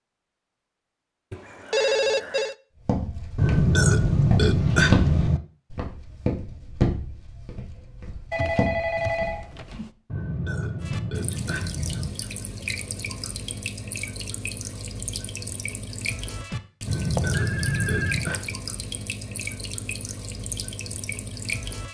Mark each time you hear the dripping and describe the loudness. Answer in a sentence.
You can hear the dripping from 10.8 to 21.8 s, at a steady volume.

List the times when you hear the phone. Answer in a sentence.
You can hear the phone from 1.3 to 2.5 s, from 8.3 to 9.9 s and from 17.1 to 18.4 s.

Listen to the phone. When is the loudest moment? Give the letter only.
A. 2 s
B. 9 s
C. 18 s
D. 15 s
A.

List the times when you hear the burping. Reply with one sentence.
You can hear the burping from 3.4 to 5.4 s, from 10.1 to 12.1 s and from 16.9 to 18.4 s.